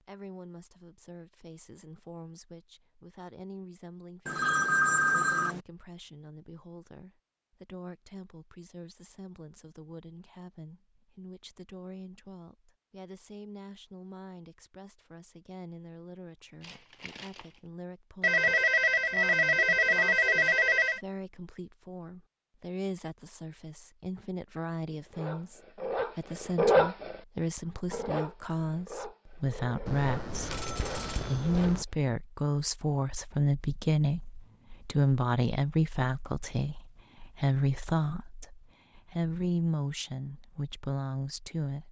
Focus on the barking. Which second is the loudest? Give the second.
27 s.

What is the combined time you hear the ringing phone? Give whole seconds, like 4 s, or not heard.
6 s.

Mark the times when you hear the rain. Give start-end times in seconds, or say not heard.
not heard.